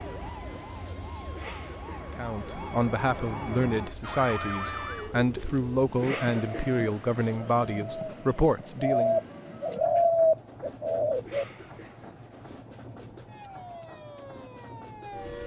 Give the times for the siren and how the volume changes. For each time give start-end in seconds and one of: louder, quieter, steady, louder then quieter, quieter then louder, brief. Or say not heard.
0.0-5.2 louder
13.2-15.4 brief.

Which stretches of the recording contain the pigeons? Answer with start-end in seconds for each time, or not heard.
4.6-11.4.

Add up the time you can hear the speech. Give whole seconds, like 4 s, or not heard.
7 s.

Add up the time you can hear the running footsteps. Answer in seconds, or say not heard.
not heard.